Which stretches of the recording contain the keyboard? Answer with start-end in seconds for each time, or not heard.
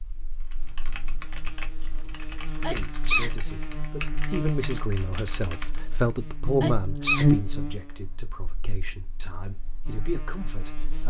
0.4-6.2.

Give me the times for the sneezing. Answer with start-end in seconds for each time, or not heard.
2.6-3.4, 6.6-7.3.